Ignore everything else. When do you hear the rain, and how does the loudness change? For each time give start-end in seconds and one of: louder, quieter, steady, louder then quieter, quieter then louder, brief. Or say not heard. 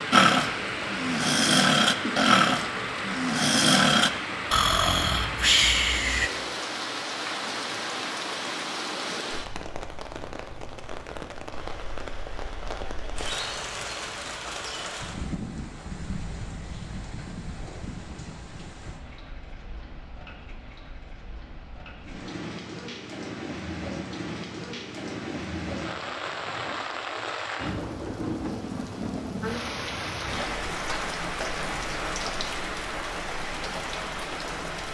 0.0-34.8 quieter then louder.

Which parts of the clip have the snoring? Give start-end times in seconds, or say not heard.
0.1-6.3.